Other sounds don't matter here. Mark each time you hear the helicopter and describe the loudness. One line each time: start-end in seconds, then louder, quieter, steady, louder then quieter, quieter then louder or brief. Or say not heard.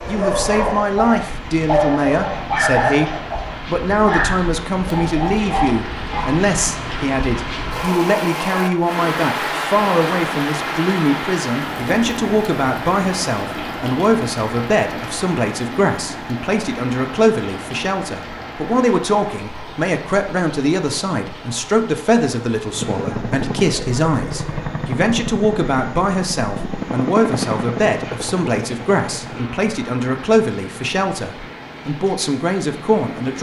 22.7-33.3 quieter.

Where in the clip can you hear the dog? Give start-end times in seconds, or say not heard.
0.0-6.5.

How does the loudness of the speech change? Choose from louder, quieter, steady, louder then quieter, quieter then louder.
steady.